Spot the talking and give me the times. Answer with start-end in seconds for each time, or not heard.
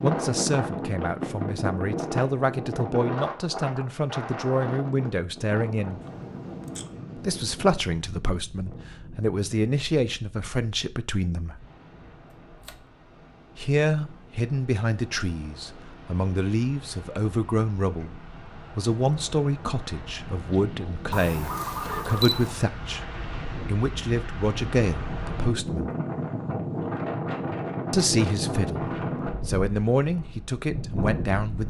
0.0-6.0, 7.2-11.6, 13.6-25.9, 27.9-31.6.